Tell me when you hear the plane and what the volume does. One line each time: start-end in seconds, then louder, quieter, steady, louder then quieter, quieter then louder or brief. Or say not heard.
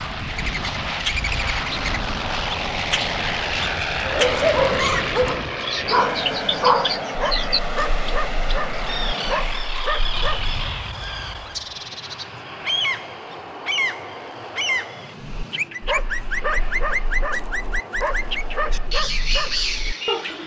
0.0-20.4 quieter.